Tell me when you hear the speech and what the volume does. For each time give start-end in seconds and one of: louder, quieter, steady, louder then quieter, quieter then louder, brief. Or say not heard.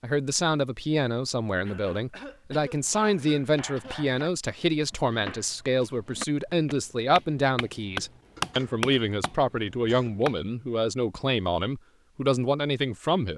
0.0-13.3 steady.